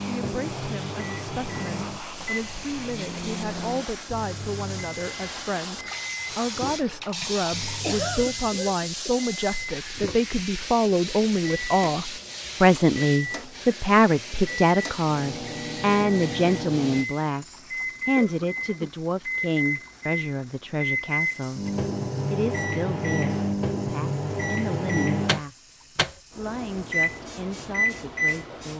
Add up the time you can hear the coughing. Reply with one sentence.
You can hear the coughing for 2 seconds altogether.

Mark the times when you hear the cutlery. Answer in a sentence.
You can't hear the cutlery here.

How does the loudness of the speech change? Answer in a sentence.
The loudness of the speech goes up, then down.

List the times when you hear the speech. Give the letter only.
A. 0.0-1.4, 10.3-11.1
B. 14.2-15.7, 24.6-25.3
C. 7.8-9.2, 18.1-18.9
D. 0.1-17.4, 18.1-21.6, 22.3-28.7
D.